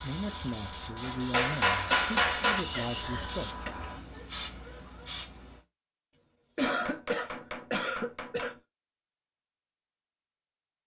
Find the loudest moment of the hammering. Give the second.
2 s.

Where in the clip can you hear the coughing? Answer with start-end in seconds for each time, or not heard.
2.7-3.7, 6.2-8.6.